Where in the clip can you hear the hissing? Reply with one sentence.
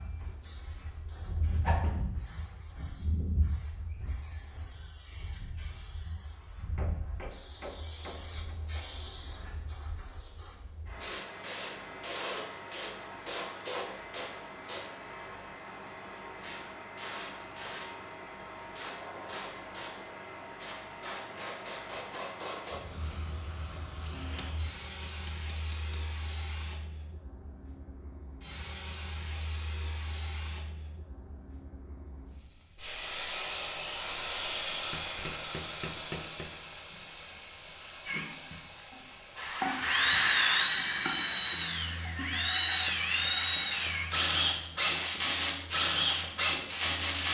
You can hear the hissing from 0.0 to 47.2 s.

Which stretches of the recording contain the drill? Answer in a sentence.
You can hear the drill from 38.0 to 47.2 s.